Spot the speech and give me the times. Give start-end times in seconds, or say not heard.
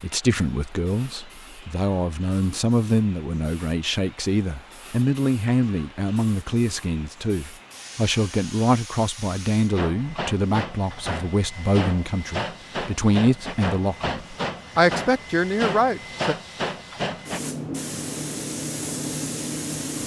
0.0-16.4.